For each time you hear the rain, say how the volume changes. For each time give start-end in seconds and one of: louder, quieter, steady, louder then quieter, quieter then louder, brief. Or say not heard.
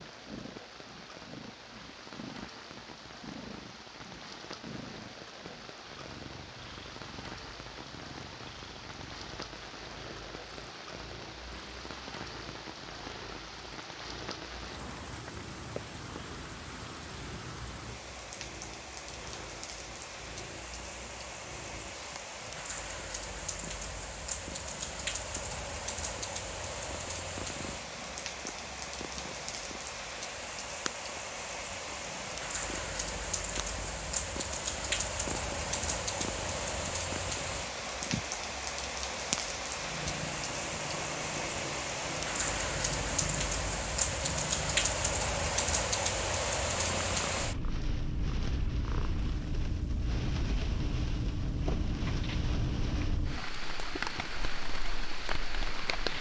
0.0-56.1 louder.